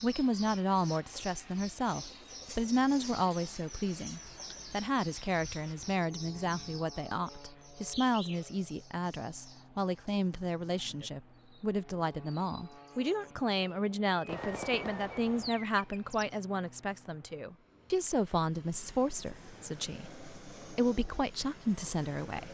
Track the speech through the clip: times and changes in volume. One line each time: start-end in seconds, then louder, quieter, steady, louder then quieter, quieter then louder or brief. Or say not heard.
0.0-22.4 steady.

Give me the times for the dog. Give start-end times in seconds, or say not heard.
not heard.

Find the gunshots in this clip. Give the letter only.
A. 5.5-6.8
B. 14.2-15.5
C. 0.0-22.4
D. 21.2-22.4
B.